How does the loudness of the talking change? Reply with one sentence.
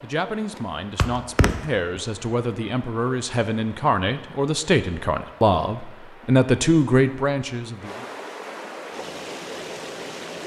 The loudness of the talking goes up.